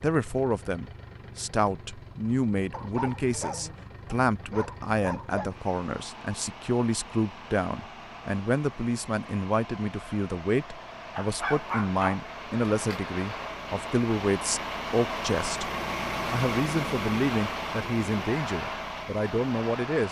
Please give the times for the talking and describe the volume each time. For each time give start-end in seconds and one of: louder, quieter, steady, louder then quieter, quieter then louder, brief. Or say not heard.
0.0-20.0 steady.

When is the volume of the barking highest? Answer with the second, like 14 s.
12 s.